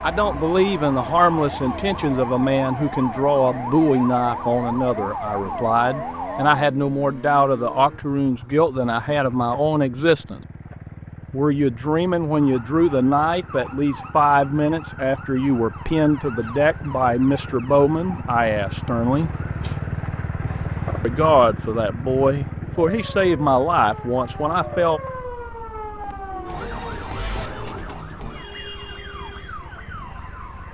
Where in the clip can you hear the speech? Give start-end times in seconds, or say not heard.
0.0-10.4, 11.3-19.3, 21.0-25.0.